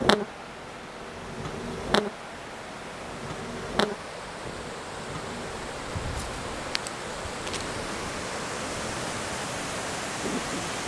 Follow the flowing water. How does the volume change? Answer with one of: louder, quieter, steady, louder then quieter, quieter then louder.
louder.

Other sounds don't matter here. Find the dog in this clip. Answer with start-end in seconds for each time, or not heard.
not heard.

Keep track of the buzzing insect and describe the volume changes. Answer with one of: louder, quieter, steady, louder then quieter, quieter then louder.
quieter.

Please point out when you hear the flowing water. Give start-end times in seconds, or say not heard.
0.0-10.8.